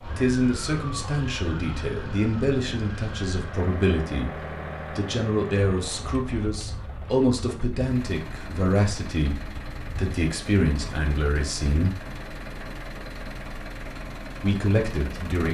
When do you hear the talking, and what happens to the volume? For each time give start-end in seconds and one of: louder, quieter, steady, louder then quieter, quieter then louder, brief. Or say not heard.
0.1-11.9 steady
14.4-15.4 brief.